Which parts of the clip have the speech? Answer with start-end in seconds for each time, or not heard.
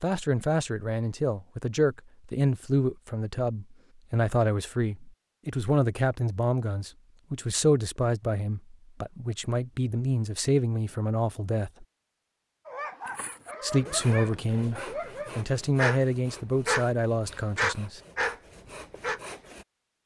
0.0-11.8, 13.6-18.0.